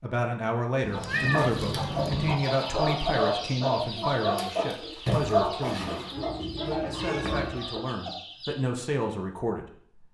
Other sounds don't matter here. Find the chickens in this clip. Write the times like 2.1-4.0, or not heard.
0.9-8.7.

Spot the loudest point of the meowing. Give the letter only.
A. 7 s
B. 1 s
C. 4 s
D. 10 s
B.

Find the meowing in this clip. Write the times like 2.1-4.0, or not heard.
0.8-2.4, 6.2-7.6.